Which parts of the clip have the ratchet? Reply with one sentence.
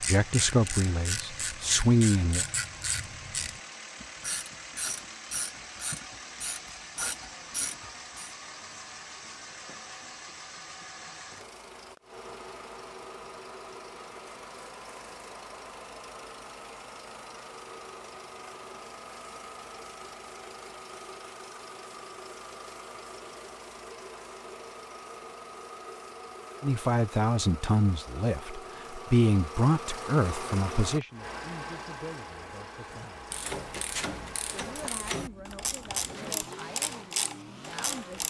The ratchet can be heard from 0.0 to 8.3 s and from 32.9 to 38.2 s.